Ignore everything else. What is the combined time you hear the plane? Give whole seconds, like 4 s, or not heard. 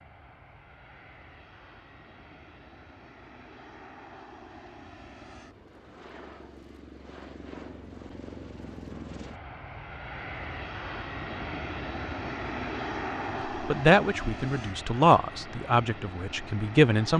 17 s.